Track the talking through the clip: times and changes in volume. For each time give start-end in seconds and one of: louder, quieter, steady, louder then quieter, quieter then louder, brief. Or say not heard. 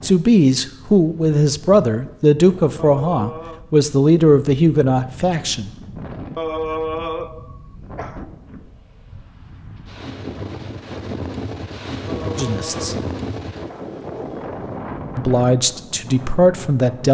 0.0-5.7 steady
12.3-12.9 brief
15.2-17.0 brief.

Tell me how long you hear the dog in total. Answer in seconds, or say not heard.
not heard.